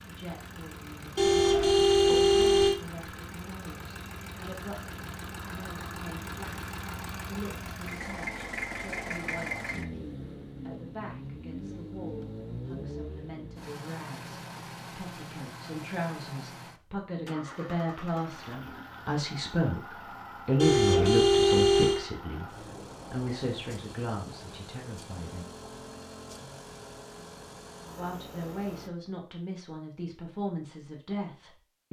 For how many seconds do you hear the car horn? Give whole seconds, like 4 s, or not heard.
3 s.